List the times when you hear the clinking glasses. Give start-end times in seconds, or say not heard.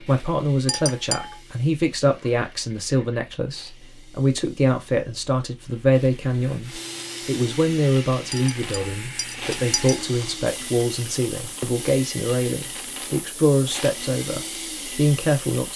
0.7-1.4, 8.3-10.1.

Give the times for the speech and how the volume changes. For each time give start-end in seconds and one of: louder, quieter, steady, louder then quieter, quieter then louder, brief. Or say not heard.
0.0-15.7 steady.